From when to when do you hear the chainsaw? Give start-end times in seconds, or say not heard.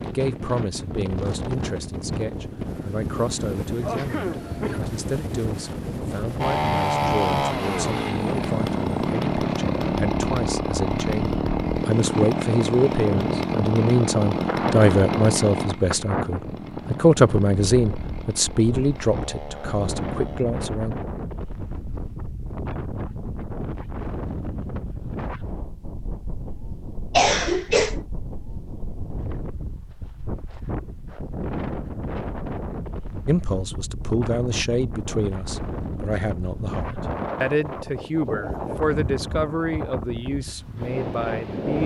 6.3-20.4.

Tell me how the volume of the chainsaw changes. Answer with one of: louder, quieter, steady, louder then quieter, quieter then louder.
quieter.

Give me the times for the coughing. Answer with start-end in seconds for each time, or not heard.
3.8-4.8, 27.1-28.0.